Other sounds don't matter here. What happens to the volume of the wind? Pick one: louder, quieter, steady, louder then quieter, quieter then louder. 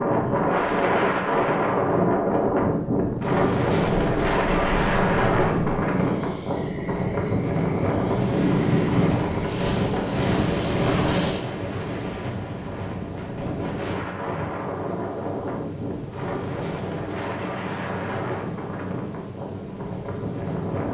quieter.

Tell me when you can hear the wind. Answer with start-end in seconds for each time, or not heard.
0.0-20.8.